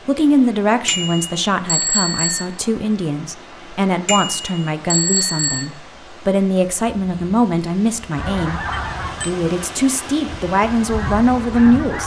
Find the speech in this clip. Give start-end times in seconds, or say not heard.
0.1-8.6, 9.2-12.0.